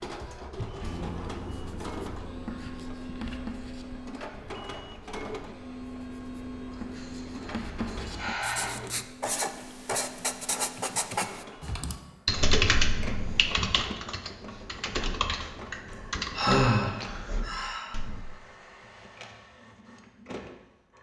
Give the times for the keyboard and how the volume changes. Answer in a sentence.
You can hear the keyboard from 11.6 to 18.2 s, getting quieter.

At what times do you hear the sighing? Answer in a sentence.
You can hear the sighing from 6.7 to 8.8 s and from 16.4 to 17.9 s.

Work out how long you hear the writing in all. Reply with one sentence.
The writing can be heard for 11 seconds in total.